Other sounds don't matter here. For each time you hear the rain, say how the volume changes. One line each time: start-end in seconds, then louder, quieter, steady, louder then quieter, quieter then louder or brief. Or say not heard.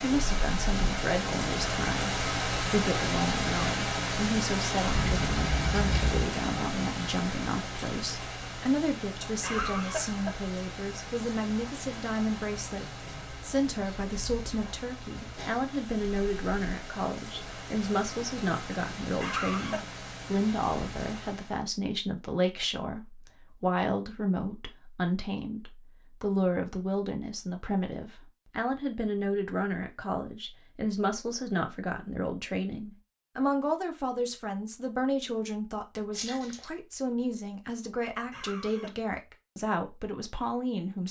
0.0-21.6 quieter.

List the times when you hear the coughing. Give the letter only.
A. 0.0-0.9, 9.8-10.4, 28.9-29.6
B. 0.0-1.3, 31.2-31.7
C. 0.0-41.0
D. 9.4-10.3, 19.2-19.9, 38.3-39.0
D.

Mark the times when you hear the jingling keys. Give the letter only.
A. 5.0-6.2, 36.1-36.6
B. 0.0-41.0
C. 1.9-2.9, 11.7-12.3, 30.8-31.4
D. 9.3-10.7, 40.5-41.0
A.